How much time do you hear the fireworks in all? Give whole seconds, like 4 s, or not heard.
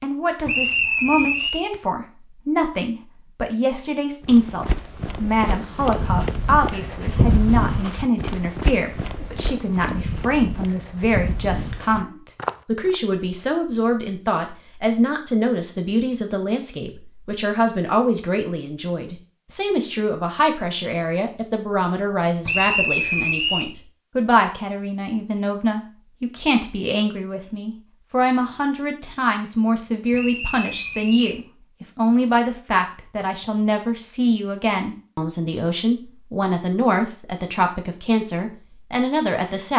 not heard.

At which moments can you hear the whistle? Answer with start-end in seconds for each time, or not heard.
0.5-1.6, 22.4-23.6, 30.1-31.4.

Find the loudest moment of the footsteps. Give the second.
7 s.